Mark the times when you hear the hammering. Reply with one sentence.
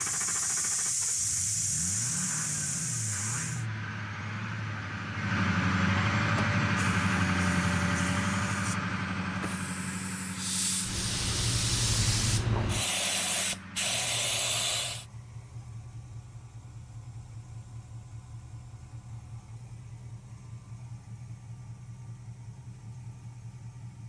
You can't hear the hammering here.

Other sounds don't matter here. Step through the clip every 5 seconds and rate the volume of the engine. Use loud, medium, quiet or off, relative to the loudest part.
medium, loud, quiet, quiet, quiet.